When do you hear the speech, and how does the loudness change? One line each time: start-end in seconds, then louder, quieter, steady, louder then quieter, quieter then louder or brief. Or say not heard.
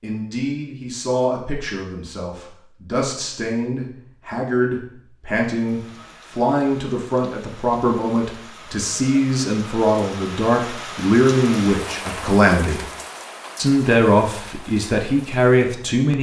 0.0-12.9 louder
13.6-16.1 brief.